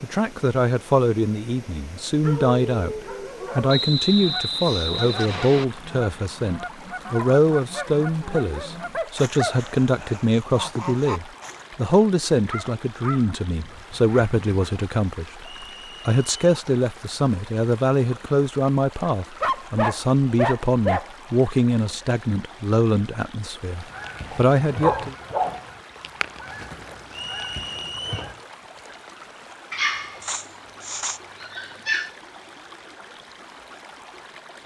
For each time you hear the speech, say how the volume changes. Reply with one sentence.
You can hear the speech from 0.0 to 25.1 s, at a steady volume.